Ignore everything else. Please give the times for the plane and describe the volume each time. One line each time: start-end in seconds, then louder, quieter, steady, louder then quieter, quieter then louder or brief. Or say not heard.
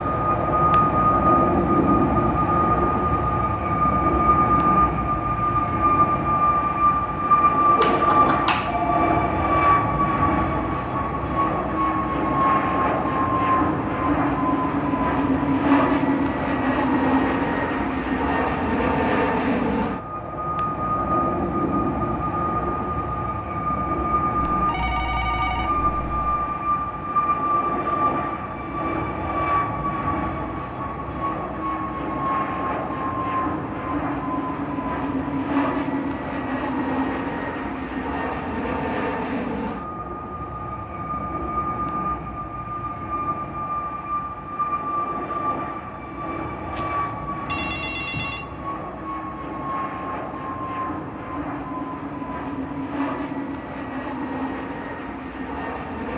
0.0-56.1 quieter.